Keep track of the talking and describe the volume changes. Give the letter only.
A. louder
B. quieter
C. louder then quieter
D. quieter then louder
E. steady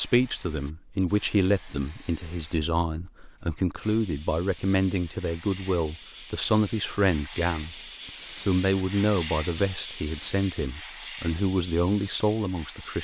E.